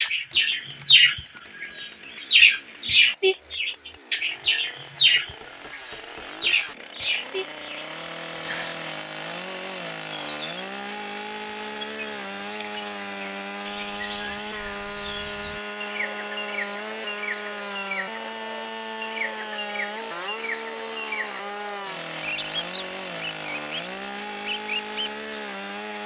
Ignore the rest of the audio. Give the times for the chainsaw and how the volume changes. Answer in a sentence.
You can hear the chainsaw from 0.0 to 26.0 s, getting louder.